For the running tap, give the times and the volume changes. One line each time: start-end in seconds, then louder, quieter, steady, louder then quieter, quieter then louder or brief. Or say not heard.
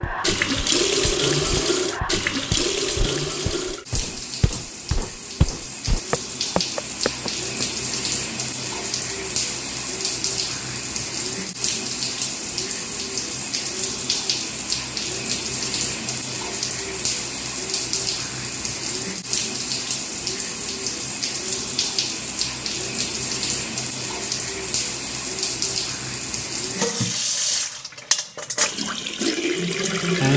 0.0-30.3 steady.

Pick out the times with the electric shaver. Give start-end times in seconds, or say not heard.
not heard.